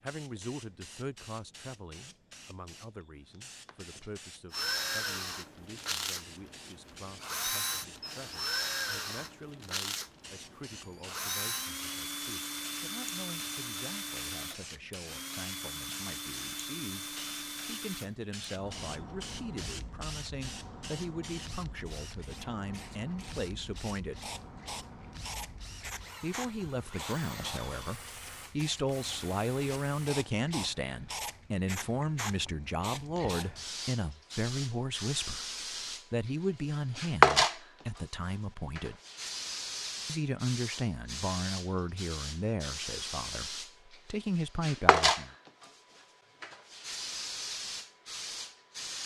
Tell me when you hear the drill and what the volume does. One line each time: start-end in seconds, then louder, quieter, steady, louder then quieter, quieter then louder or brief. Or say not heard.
4.5-30.1 quieter.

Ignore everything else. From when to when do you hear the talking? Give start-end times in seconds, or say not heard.
0.0-24.2, 26.2-35.5, 36.1-39.0, 40.0-45.4.